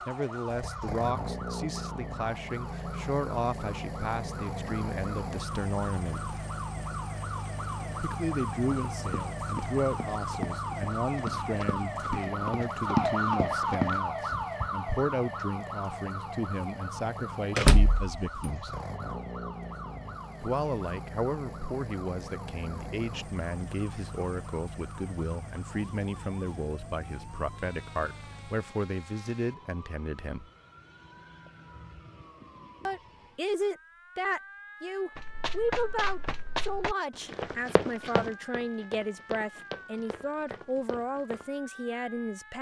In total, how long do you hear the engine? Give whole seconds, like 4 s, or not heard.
29 s.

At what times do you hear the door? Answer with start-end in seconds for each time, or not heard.
17.6-18.2.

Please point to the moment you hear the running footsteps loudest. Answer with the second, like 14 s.
13 s.